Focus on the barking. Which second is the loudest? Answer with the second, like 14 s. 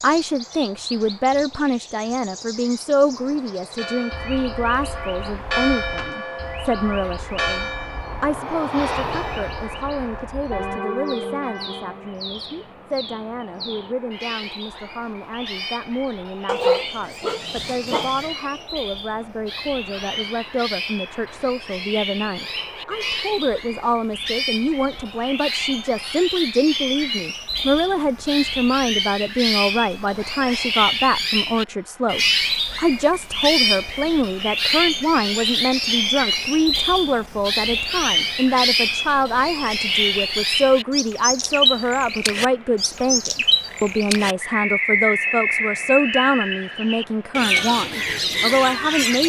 17 s.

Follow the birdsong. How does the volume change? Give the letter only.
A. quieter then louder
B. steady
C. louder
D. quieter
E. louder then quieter
C.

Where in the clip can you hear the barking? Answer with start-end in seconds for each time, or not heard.
16.4-18.3.